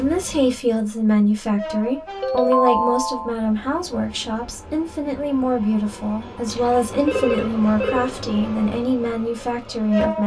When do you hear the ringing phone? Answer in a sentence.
You can hear the ringing phone from 2.2 to 3.4 s and from 6.2 to 8.2 s.